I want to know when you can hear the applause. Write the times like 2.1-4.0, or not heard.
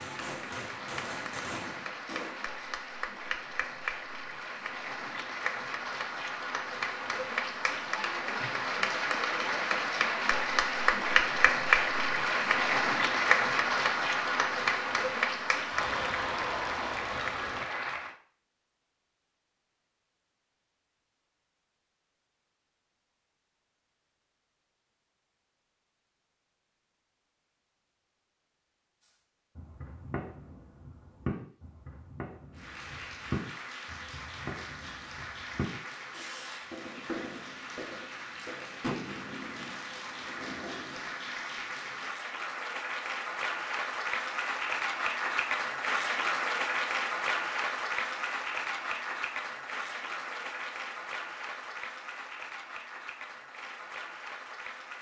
0.0-18.1, 32.5-54.9.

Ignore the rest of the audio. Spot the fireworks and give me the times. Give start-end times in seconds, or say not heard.
0.0-2.6, 29.6-41.2.